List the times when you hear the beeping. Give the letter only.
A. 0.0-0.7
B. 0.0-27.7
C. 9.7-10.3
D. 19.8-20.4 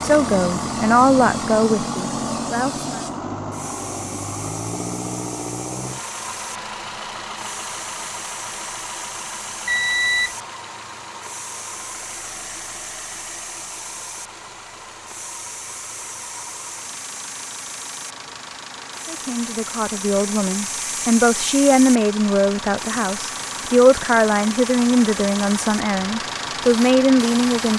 C.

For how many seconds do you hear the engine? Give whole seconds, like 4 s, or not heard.
28 s.